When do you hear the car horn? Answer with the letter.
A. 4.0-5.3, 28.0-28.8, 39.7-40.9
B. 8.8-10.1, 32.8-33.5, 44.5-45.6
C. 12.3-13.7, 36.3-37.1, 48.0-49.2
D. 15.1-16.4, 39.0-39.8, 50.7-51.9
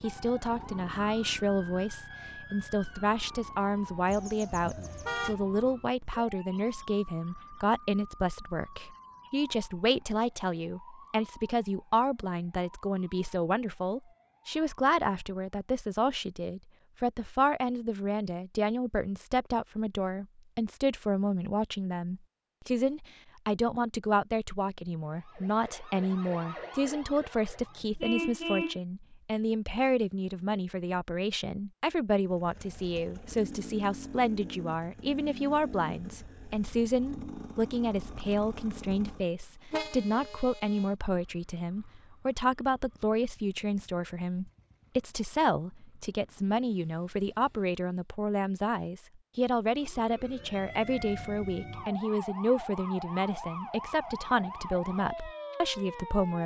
A.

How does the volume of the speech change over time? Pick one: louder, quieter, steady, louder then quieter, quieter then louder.
steady.